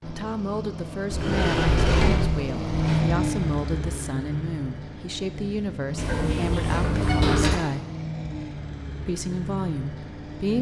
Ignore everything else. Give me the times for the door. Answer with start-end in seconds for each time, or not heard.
1.1-3.0, 6.0-7.6.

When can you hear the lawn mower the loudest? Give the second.
3 s.